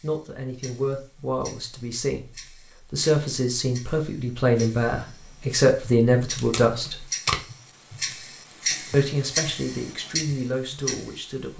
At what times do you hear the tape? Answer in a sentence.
You can hear the tape from 6.2 to 7.4 s.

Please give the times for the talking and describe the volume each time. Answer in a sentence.
You can hear the talking from 0.0 to 7.0 s, getting louder; and briefly from 8.9 to 11.5 s.